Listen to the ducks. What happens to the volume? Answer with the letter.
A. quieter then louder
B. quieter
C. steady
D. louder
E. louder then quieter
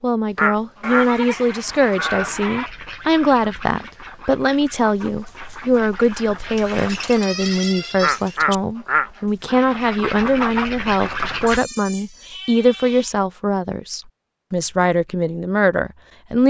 A.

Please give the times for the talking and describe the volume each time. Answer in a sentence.
You can hear the talking from 0.0 to 16.4 s, at a steady volume.